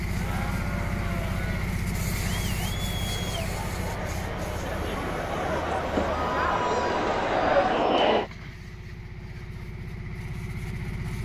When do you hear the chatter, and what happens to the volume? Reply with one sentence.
The chatter can be heard from 0.1 to 8.3 s, getting louder.